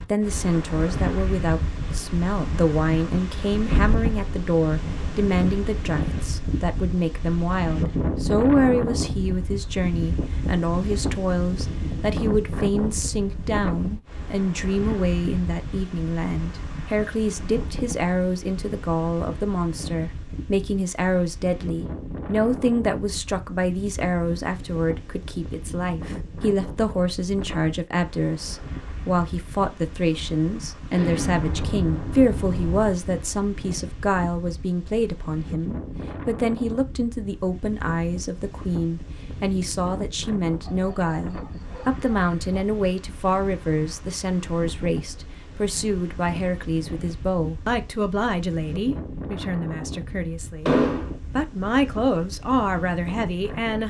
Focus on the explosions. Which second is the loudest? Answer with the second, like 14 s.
51 s.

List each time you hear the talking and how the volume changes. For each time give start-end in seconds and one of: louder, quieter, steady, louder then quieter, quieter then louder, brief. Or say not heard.
0.1-53.8 steady.